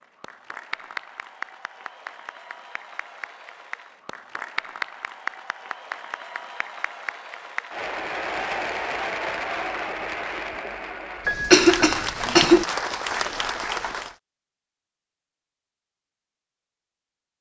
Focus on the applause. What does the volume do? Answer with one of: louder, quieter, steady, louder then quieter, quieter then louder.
louder.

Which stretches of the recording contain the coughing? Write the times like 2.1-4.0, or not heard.
11.2-12.7.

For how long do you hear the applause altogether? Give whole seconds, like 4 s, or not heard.
14 s.